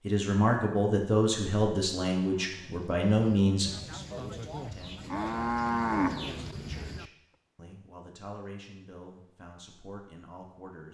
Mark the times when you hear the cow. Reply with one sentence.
You can hear the cow from 2.3 to 7.0 s.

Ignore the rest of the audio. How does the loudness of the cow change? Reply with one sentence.
The loudness of the cow goes up.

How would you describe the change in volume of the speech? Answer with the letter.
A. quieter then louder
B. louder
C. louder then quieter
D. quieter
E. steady
D.